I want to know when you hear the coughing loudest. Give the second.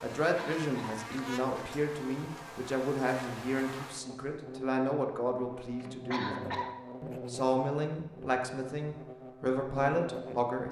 6 s.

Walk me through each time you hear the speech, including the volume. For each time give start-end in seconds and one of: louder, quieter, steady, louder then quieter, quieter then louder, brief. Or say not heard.
0.0-10.6 steady.